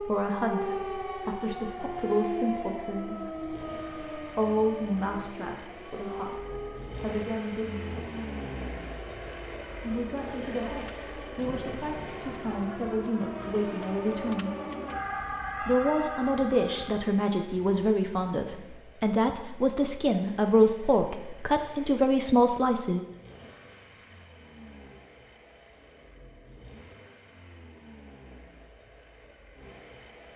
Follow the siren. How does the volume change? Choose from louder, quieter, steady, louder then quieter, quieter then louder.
quieter then louder.